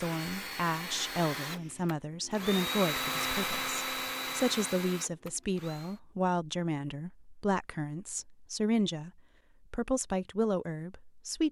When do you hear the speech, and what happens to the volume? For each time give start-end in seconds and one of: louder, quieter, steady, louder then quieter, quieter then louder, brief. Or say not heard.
0.0-11.4 steady.